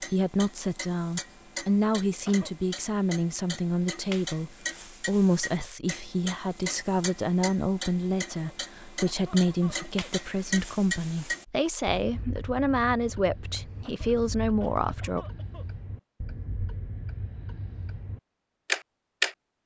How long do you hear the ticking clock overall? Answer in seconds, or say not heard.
19 s.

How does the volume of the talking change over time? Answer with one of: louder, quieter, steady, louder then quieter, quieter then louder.
steady.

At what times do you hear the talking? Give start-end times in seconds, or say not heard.
0.0-15.2.